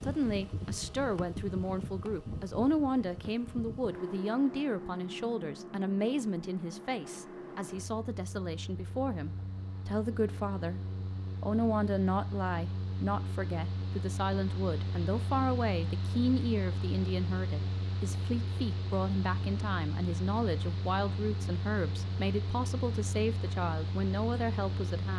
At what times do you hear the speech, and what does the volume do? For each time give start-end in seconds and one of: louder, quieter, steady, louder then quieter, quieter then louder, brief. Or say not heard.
0.0-25.1 steady.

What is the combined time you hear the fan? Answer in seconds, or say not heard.
25 s.